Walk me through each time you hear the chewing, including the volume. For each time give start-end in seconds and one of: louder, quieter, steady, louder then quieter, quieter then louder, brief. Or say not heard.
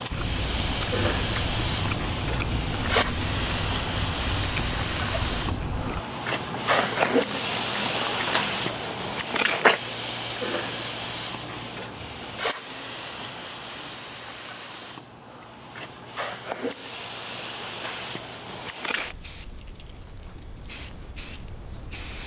0.1-9.8 steady.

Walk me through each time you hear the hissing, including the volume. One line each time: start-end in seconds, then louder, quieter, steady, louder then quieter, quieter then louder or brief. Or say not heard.
0.0-22.2 quieter.